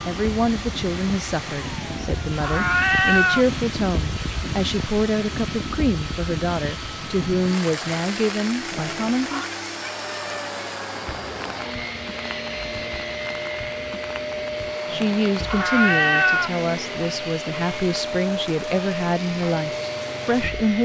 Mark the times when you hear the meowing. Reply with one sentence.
The meowing can be heard from 1.8 to 3.5 s, from 8.7 to 9.5 s and from 14.8 to 16.5 s.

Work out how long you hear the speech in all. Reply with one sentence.
The speech can be heard for 15 seconds in total.